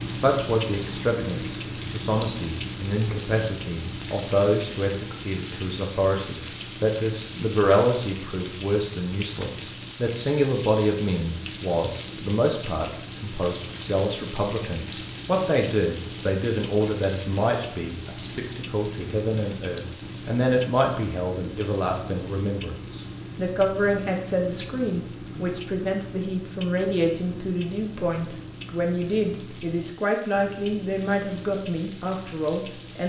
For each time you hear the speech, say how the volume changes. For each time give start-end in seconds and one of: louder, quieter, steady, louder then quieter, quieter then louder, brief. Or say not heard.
0.0-33.0 steady.